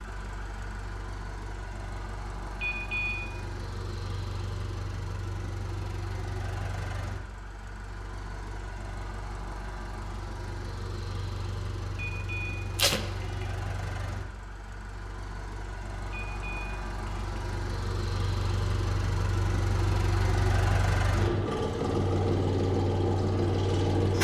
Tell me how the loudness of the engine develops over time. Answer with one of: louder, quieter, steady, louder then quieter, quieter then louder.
louder.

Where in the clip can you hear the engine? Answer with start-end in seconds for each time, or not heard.
0.0-24.1.